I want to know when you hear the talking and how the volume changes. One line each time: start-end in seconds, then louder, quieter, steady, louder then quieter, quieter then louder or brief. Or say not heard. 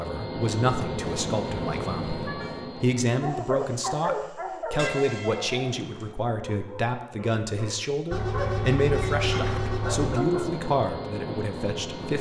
0.0-12.1 steady.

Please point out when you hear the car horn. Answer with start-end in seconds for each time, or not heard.
0.9-2.5, 4.8-6.2, 8.1-10.2.